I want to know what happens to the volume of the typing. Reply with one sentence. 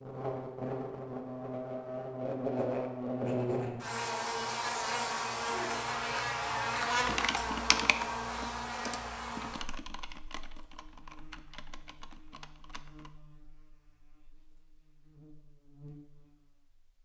The loudness of the typing goes down.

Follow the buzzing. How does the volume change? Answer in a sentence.
The volume of the buzzing goes down.